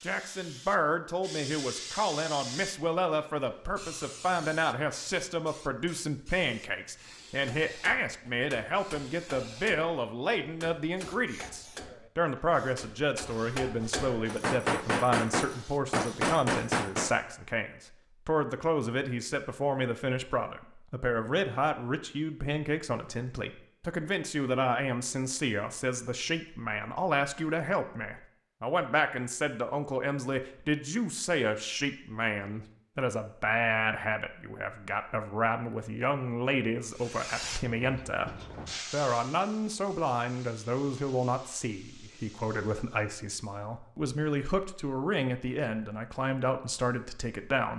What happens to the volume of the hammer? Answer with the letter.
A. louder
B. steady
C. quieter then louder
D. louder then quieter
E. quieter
A.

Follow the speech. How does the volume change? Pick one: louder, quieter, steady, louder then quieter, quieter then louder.
steady.